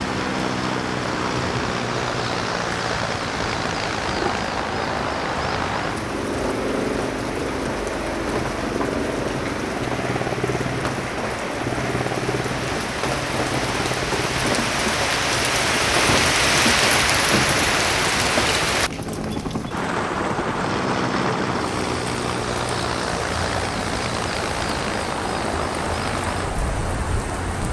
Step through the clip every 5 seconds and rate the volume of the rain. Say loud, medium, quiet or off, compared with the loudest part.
medium, medium, medium, loud, medium, medium.